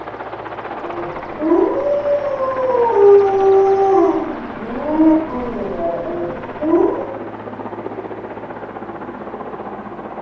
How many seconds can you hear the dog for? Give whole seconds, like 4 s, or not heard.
6 s.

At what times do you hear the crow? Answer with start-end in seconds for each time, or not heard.
not heard.